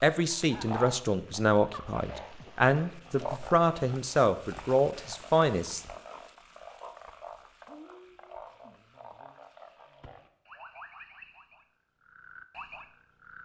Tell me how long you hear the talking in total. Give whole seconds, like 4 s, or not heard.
6 s.